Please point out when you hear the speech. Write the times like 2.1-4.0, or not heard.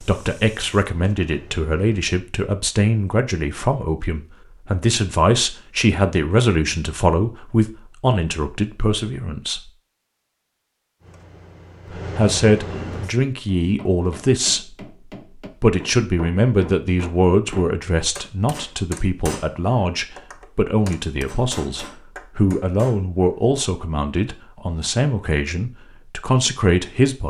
0.0-9.7, 11.9-14.8, 15.6-27.2.